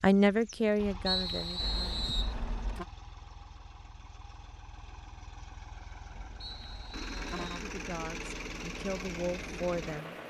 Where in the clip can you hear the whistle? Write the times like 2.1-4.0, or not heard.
1.1-2.4, 6.4-7.7.